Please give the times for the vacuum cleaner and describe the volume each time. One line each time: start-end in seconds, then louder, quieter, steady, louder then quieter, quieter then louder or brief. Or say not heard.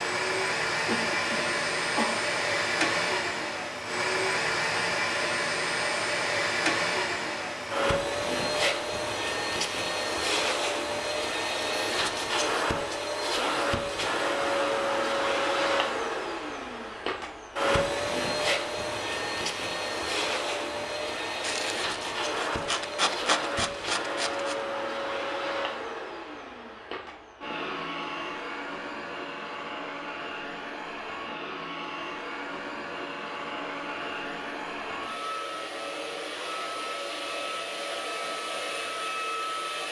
0.0-39.8 quieter.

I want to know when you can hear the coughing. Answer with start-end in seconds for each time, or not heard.
0.8-2.1.